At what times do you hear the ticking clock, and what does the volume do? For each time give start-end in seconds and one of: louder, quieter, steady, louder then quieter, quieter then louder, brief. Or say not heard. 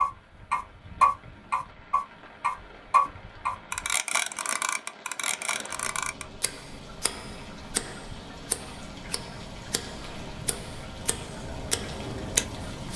0.0-12.9 quieter then louder.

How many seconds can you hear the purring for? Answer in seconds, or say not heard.
not heard.